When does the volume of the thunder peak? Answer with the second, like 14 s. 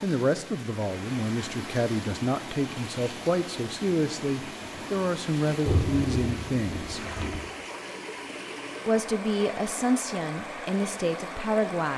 6 s.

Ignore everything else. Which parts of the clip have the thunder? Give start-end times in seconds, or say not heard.
5.7-7.4.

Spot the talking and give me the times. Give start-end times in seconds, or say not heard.
0.0-7.0, 8.8-11.9.